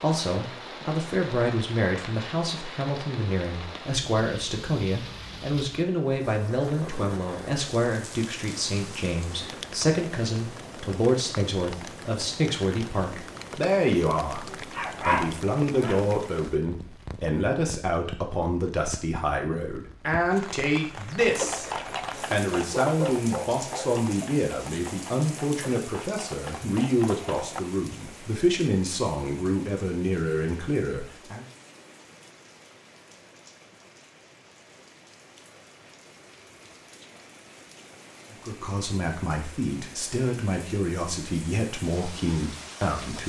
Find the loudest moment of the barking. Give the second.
15 s.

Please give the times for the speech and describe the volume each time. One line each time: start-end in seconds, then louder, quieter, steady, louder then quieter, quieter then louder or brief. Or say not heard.
0.0-21.6 steady
22.3-31.4 steady
38.3-43.2 steady.